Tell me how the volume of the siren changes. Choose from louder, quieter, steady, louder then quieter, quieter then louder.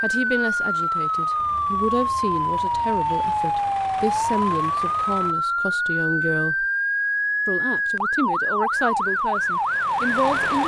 steady.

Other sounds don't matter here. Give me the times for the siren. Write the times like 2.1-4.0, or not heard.
0.1-10.6.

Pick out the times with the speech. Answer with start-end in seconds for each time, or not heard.
0.0-6.7, 7.5-10.6.